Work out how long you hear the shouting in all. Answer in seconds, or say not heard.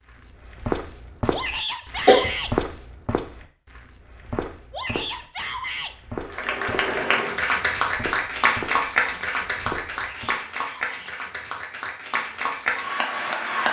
4 s.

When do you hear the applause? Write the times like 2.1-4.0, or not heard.
6.3-13.6.